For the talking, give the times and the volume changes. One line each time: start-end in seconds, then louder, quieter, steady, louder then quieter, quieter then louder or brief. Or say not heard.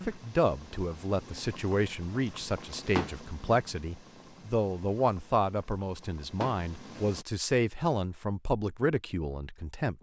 0.1-9.9 steady.